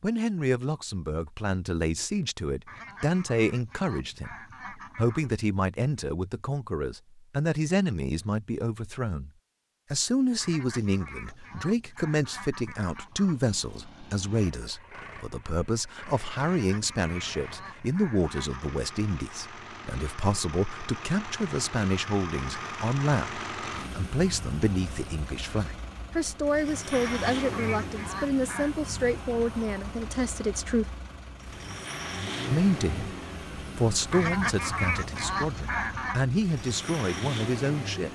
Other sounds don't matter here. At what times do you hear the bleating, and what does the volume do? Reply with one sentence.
You can't hear the bleating here.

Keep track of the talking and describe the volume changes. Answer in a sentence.
The volume of the talking stays about the same.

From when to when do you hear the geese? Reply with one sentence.
The geese can be heard from 2.6 to 5.3 s, from 10.3 to 13.3 s, from 16.4 to 18.6 s, from 26.9 to 28.7 s and from 34.1 to 36.2 s.